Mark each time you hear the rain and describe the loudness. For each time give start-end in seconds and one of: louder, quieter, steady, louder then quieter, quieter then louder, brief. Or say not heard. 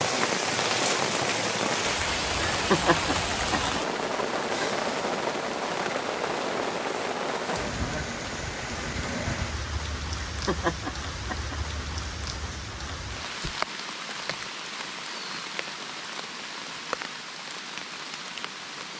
0.0-18.9 quieter.